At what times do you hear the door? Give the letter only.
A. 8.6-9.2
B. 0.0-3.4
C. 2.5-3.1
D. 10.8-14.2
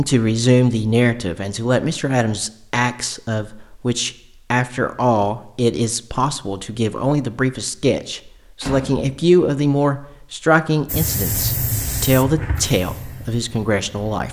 A.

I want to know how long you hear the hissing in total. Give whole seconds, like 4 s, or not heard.
3 s.